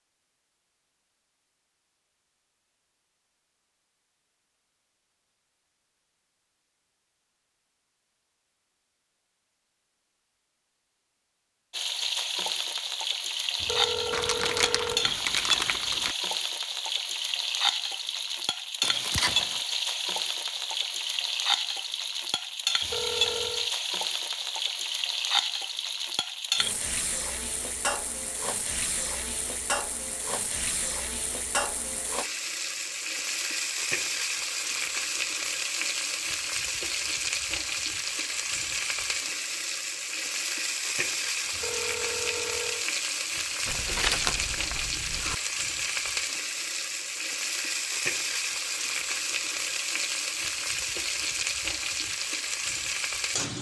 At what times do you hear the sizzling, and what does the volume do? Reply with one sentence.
You can hear the sizzling from 11.7 to 53.5 s, at a steady volume.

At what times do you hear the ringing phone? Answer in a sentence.
You can hear the ringing phone from 13.6 to 15.1 s, from 22.8 to 23.7 s and from 41.5 to 42.9 s.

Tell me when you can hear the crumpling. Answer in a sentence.
You can hear the crumpling from 14.1 to 16.1 s, from 18.8 to 19.6 s and from 43.6 to 45.4 s.